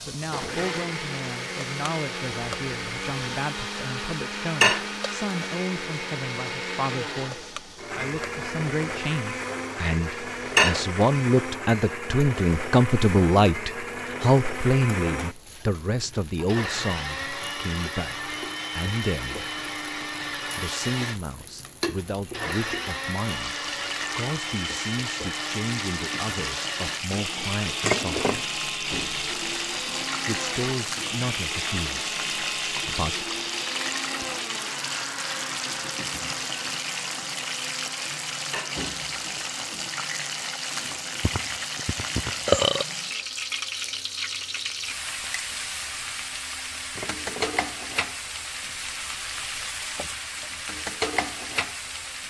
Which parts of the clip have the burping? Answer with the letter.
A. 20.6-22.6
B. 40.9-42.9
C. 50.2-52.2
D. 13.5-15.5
B.